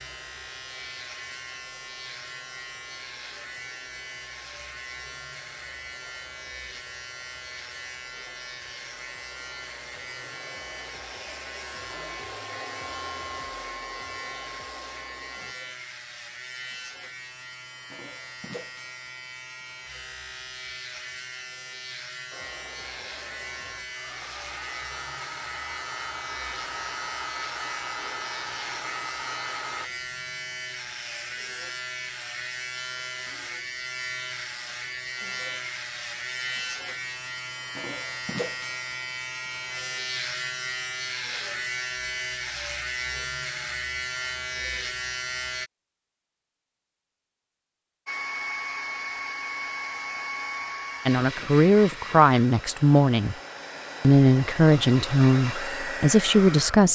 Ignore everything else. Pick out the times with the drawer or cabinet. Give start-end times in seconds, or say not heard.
not heard.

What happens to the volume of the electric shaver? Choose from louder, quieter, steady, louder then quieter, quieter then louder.
louder.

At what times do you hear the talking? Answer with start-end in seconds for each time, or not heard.
51.0-53.4, 54.0-56.9.